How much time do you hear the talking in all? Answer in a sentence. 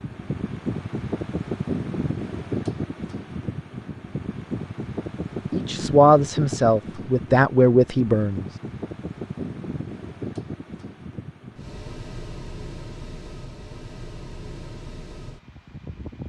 The talking can be heard for 3 seconds in total.